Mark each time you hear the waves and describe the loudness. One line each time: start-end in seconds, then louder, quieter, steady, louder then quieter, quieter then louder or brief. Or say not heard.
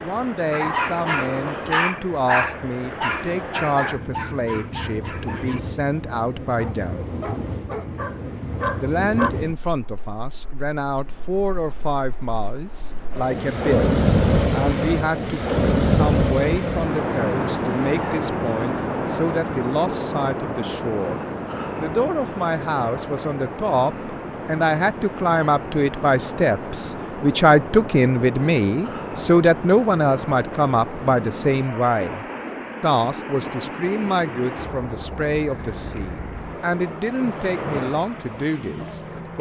0.0-39.3 louder then quieter.